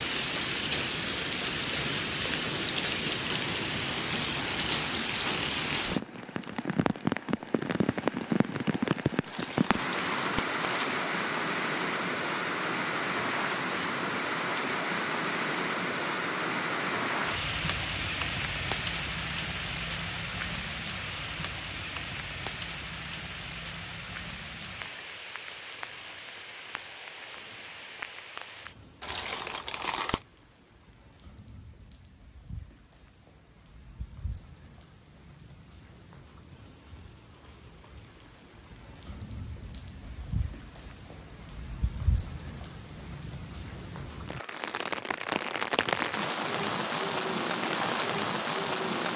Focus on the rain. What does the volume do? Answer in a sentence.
The volume of the rain goes down, then up.